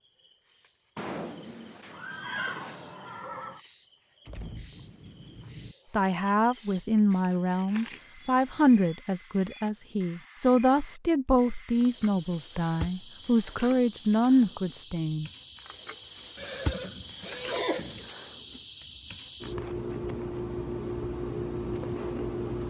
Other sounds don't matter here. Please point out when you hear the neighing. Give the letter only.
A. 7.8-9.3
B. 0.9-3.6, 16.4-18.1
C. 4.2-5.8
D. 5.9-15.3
B.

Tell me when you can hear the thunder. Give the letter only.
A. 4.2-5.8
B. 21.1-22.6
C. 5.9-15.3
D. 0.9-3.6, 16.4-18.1
A.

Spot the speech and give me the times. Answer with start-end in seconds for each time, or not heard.
5.9-15.3.